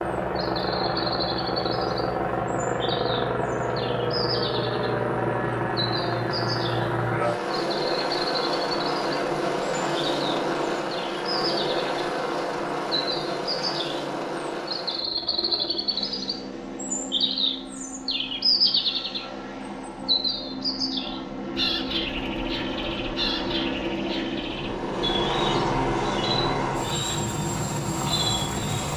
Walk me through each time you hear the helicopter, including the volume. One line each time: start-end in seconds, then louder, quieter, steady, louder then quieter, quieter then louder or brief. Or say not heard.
0.0-28.9 quieter then louder.